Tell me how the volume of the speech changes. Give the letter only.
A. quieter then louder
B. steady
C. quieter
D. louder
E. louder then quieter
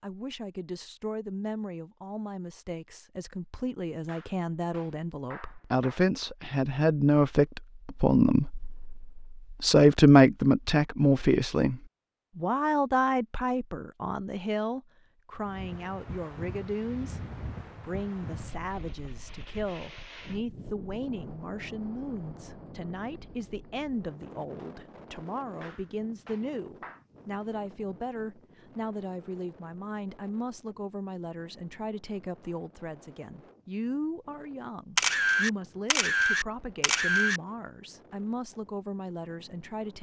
E.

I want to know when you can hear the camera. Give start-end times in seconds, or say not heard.
35.0-37.4.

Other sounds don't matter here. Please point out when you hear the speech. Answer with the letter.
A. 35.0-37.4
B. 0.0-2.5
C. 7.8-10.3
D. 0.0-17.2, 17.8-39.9
D.